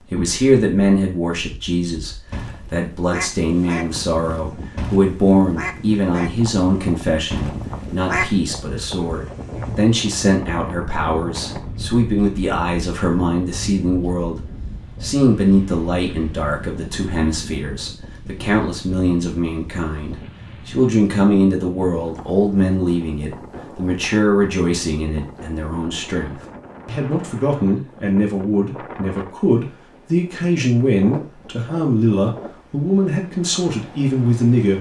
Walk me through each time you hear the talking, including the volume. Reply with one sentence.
You can hear the talking from 0.1 to 34.7 s, at a steady volume.